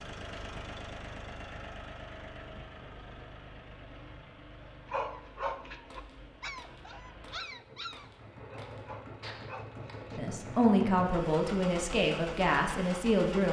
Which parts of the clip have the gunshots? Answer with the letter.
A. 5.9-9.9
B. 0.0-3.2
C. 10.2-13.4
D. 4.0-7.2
A.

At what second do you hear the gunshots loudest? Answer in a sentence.
The loudest moment of the gunshots is at 9 seconds.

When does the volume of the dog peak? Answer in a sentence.
The loudest moment of the dog is at 5 seconds.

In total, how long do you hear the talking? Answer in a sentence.
The talking can be heard for 3 seconds in total.